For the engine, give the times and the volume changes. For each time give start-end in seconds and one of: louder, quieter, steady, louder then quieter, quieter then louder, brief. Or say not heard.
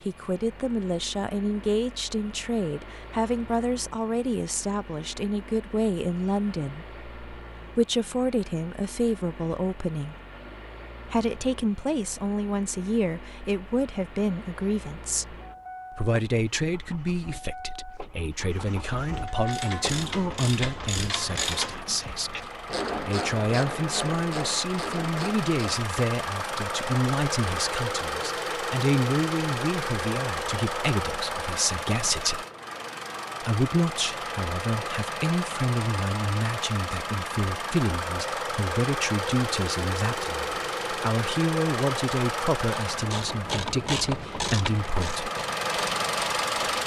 0.0-46.8 louder.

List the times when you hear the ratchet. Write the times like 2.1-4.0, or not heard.
19.2-25.9, 42.6-46.8.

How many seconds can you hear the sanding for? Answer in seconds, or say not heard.
not heard.